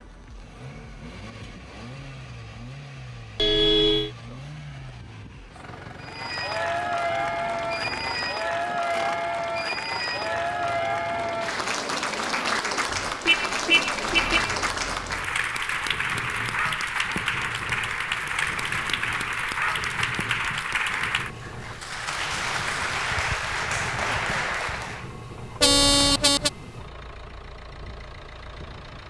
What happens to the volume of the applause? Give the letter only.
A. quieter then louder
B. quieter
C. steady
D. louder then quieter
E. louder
C.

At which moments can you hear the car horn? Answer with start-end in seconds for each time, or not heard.
3.4-4.1, 13.2-14.6, 25.6-26.5.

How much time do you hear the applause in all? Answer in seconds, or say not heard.
19 s.